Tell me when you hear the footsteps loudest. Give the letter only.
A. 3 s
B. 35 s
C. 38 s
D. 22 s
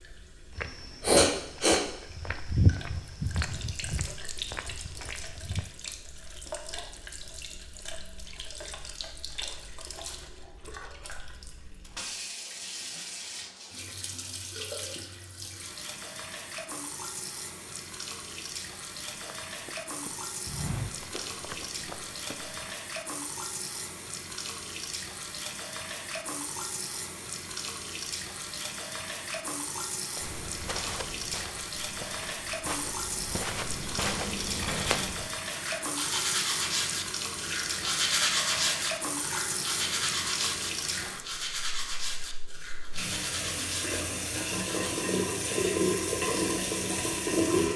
A.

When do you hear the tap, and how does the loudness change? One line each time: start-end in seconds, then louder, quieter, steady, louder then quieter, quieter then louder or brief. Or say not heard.
0.0-47.7 louder.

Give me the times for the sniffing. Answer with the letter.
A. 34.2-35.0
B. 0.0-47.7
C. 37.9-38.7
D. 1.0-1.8
D.